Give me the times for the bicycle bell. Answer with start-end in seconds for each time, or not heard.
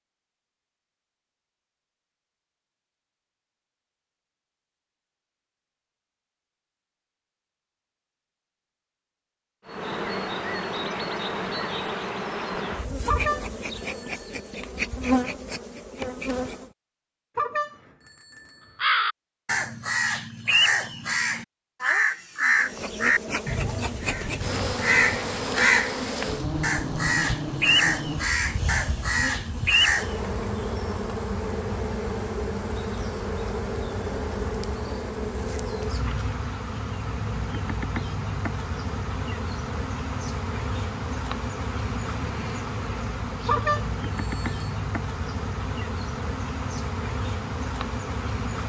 13.1-14.6, 17.4-18.9, 43.5-44.8.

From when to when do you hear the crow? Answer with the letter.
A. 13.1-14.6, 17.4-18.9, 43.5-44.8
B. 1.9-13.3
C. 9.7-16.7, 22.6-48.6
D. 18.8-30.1
D.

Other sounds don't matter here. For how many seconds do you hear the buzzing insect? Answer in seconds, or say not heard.
33 s.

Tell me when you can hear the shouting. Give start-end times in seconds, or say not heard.
not heard.